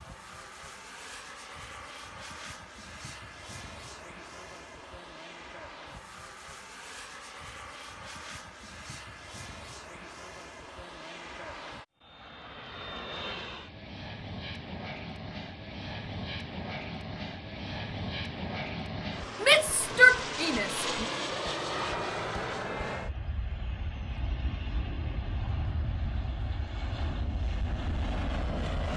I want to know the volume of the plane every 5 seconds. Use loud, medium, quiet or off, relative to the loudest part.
medium, medium, medium, loud, loud, loud.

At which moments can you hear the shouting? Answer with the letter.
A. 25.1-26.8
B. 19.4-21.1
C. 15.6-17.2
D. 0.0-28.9
B.